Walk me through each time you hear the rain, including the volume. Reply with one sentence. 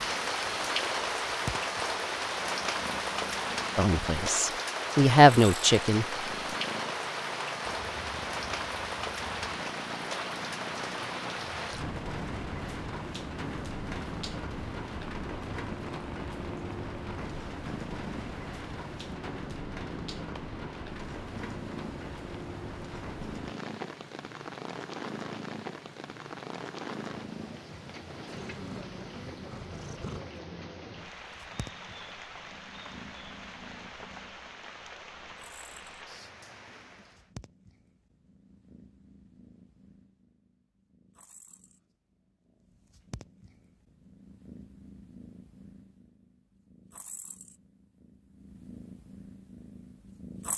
You can hear the rain from 0.0 to 37.3 s, getting quieter.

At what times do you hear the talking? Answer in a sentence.
You can hear the talking from 3.8 to 6.0 s.